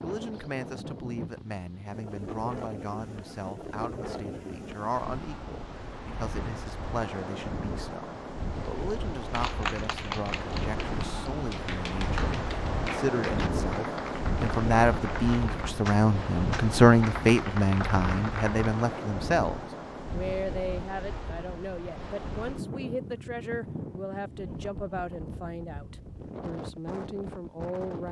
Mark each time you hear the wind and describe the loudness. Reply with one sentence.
You can hear the wind from 0.0 to 28.0 s, getting louder then quieter.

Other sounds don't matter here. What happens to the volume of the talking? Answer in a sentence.
The volume of the talking goes up, then down.